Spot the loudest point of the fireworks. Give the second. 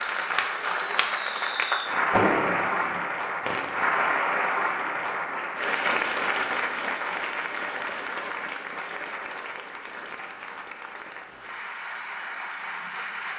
2 s.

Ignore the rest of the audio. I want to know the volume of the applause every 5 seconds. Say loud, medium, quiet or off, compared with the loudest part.
loud, loud, medium.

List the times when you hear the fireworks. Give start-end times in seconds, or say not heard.
0.0-3.8.